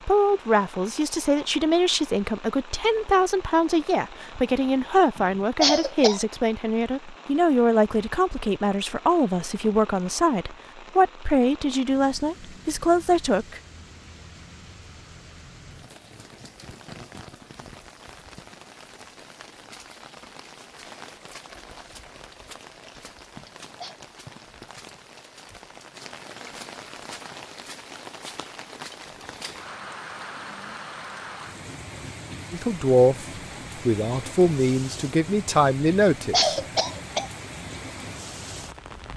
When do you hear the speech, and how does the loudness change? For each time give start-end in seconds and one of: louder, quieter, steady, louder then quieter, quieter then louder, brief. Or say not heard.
0.1-13.6 steady
32.5-33.2 brief
33.9-36.6 brief.